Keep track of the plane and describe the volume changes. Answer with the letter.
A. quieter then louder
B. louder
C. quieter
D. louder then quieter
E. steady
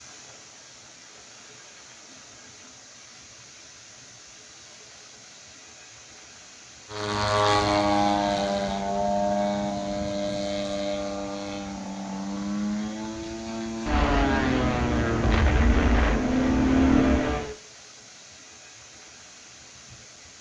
A.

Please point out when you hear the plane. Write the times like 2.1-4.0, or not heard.
6.9-17.6.